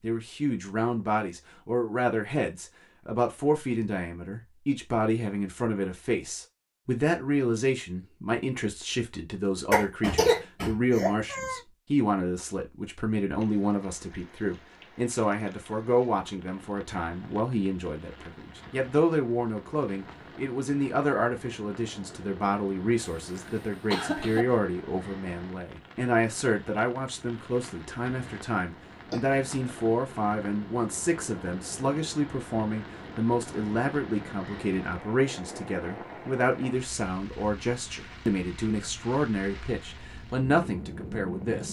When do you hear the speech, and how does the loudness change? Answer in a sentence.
You can hear the speech from 0.0 to 41.6 s, at a steady volume.